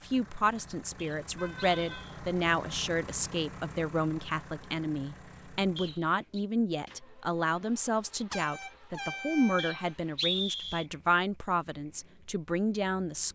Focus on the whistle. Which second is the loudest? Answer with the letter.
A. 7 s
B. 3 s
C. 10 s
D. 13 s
C.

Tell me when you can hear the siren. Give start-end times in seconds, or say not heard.
not heard.